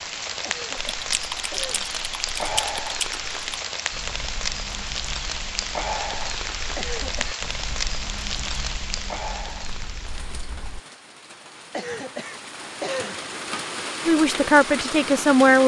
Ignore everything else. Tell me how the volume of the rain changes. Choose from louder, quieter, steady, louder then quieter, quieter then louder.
quieter then louder.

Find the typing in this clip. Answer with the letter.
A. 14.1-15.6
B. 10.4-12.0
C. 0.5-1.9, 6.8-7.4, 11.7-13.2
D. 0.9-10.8
D.